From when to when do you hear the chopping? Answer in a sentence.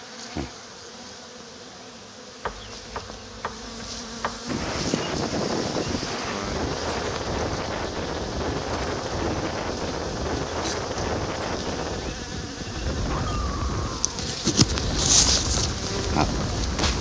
The chopping can be heard from 2.4 to 4.4 s.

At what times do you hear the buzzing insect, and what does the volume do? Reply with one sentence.
You can hear the buzzing insect from 0.0 to 16.9 s, getting louder.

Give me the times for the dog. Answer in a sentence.
The dog can be heard from 13.1 to 14.2 s.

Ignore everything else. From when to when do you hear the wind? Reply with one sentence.
You can hear the wind from 4.5 to 16.9 s.